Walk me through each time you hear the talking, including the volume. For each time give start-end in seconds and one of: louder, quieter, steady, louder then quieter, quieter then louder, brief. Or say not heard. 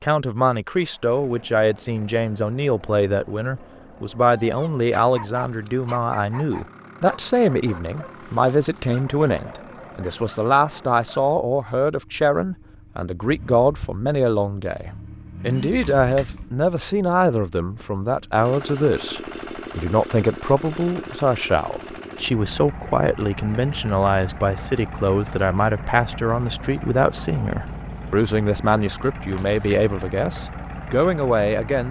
0.0-31.8 steady.